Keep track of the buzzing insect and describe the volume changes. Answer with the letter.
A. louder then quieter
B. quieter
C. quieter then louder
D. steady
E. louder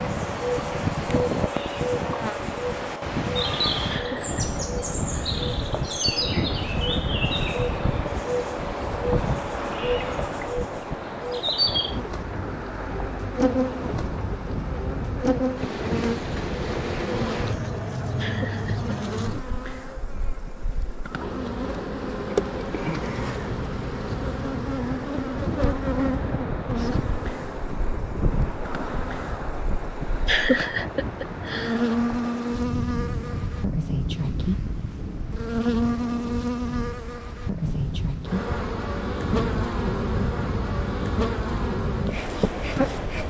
D.